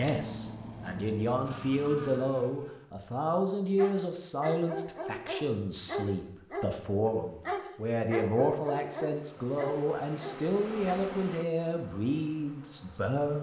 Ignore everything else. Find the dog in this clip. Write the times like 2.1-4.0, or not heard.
3.8-10.9.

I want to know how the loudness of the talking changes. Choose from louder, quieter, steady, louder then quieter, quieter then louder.
steady.